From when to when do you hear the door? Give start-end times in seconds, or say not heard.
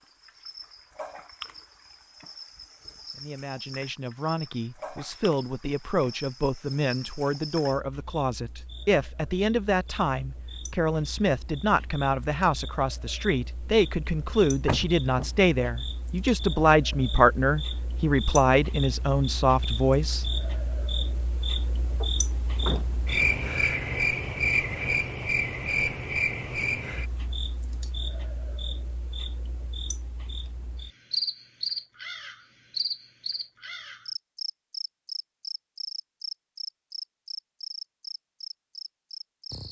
14.7-15.3, 22.0-22.9.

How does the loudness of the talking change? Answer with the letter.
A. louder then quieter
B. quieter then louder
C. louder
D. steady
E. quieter
C.